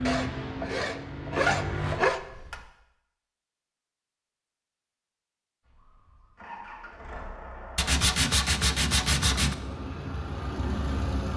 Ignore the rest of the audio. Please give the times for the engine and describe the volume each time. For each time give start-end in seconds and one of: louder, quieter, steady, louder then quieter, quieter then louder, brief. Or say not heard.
0.0-2.6 brief
5.7-11.3 louder.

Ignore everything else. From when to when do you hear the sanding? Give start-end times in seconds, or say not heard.
0.1-2.2, 7.8-9.6.